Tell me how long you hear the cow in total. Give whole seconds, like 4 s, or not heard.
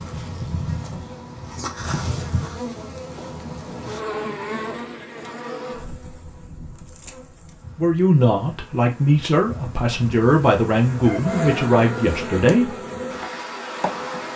not heard.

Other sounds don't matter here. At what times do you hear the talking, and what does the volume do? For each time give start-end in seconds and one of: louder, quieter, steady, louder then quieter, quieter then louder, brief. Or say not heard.
7.8-12.8 steady.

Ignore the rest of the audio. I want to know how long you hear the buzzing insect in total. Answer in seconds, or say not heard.
14 s.